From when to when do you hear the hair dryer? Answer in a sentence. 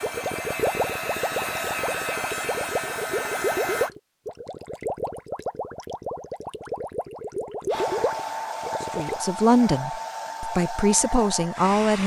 The hair dryer can be heard from 0.0 to 3.9 s and from 7.7 to 12.0 s.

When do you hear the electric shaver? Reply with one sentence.
You can't hear the electric shaver here.